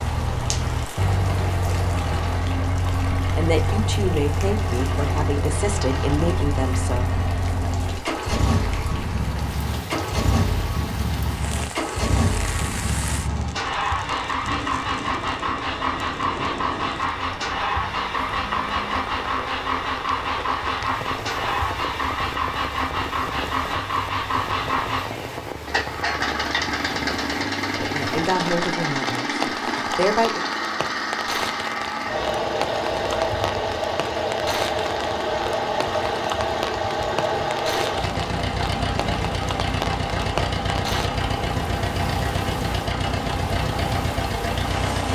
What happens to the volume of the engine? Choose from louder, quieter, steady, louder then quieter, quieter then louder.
steady.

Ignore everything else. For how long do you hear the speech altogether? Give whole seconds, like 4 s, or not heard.
7 s.